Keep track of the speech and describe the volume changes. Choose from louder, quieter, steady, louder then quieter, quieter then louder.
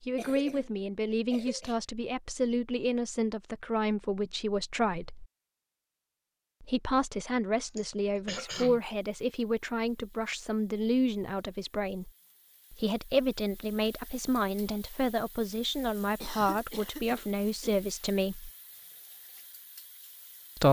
steady.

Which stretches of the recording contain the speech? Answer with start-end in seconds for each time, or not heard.
0.0-5.2, 6.6-12.1, 12.7-18.5.